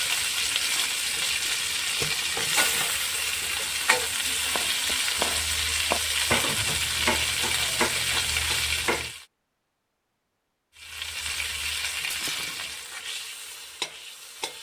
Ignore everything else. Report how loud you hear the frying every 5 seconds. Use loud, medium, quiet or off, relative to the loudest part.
loud, loud, medium.